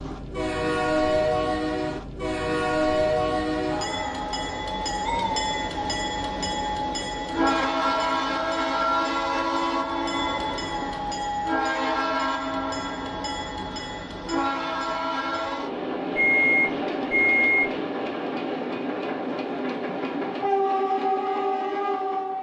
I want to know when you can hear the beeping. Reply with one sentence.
The beeping can be heard from 16.1 to 17.7 s.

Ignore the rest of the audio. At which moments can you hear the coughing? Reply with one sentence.
You can't hear the coughing here.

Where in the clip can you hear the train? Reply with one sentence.
You can hear the train from 0.0 to 22.3 s.